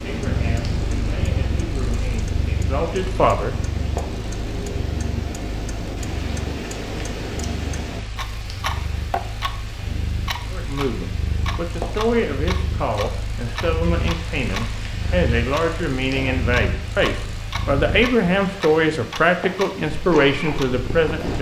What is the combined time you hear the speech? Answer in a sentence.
The speech can be heard for 14 seconds in total.